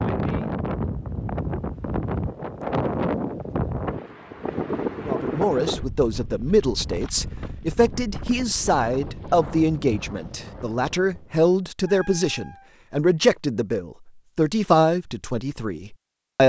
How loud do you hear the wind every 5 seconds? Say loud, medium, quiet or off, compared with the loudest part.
loud, medium, quiet, off.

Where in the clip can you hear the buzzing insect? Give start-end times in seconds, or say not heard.
not heard.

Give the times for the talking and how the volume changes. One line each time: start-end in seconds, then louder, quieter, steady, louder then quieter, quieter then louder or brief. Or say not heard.
5.0-16.4 steady.